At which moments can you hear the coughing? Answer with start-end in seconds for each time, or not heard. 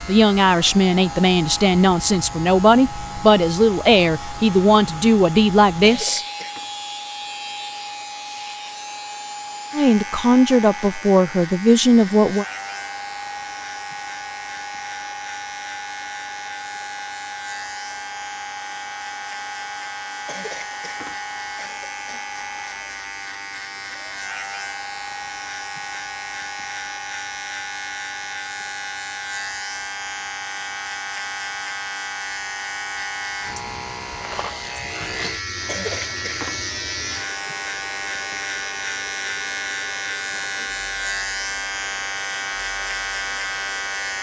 5.8-6.7, 20.2-22.2, 35.6-36.6.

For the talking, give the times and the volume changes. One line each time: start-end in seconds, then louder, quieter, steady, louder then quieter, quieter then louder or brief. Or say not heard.
0.1-6.2 steady
9.7-12.4 brief.